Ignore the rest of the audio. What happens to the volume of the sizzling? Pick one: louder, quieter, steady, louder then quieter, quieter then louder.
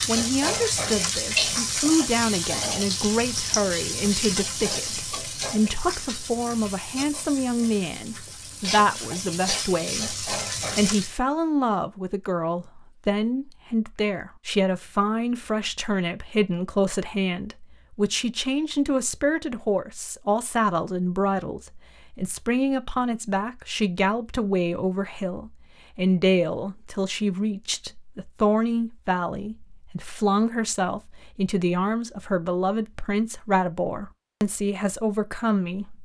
quieter then louder.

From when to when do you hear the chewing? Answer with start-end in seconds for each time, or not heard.
not heard.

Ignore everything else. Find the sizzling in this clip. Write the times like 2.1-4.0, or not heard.
0.0-11.2.